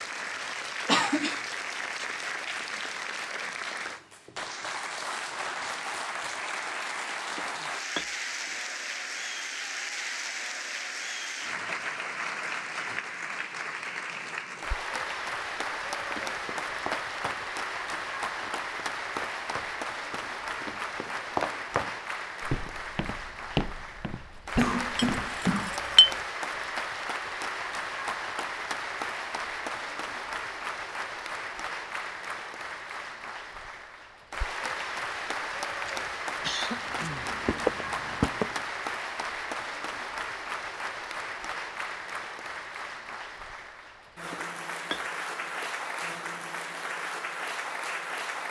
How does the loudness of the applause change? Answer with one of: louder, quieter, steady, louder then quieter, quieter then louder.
steady.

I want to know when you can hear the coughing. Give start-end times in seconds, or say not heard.
0.8-1.4, 24.6-25.8, 35.9-37.4.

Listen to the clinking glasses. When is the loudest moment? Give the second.
26 s.